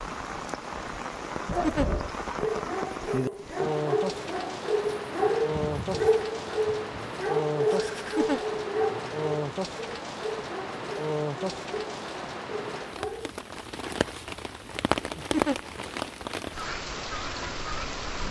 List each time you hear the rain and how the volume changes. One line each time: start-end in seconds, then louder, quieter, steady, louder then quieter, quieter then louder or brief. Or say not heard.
0.0-18.2 steady.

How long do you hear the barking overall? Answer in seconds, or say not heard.
12 s.